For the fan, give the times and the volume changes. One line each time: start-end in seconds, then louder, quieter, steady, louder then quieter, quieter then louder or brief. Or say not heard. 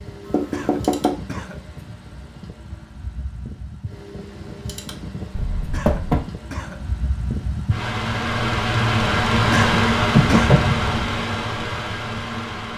0.0-12.7 louder.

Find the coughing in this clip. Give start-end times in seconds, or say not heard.
0.5-1.6, 5.7-6.8, 9.5-10.6.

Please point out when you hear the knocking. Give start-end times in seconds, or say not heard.
0.3-1.1, 5.3-6.2, 10.2-11.1.